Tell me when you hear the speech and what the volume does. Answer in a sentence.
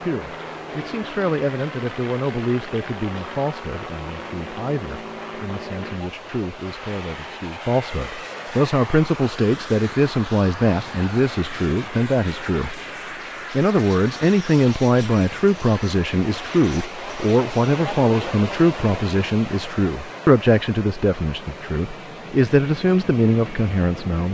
The speech can be heard from 0.0 to 12.8 s, getting quieter then louder; and from 13.5 to 24.2 s, at a steady volume.